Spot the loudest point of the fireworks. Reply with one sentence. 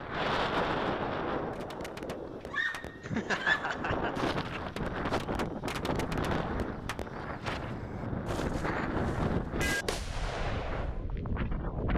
The volume of the fireworks peaks at 10 seconds.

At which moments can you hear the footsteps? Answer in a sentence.
You can't hear the footsteps here.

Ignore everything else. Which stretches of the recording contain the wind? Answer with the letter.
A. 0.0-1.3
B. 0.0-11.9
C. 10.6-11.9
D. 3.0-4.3
B.